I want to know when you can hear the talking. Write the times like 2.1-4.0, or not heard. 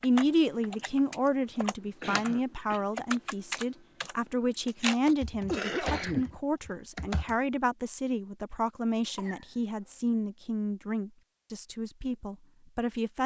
0.0-13.2.